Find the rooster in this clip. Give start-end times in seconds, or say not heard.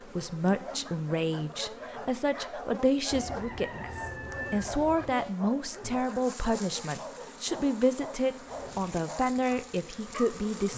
3.1-5.1.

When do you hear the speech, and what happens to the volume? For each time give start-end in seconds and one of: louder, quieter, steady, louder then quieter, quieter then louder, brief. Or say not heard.
0.1-10.7 steady.